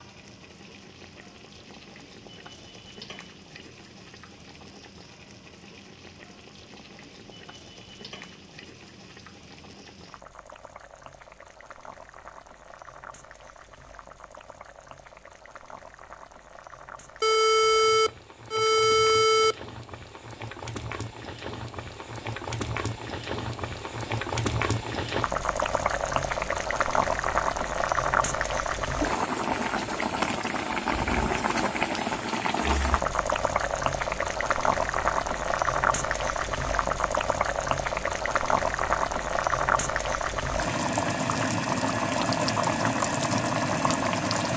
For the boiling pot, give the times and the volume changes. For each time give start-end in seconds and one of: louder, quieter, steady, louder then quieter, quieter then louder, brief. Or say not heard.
0.0-44.5 louder.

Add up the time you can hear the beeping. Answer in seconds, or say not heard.
2 s.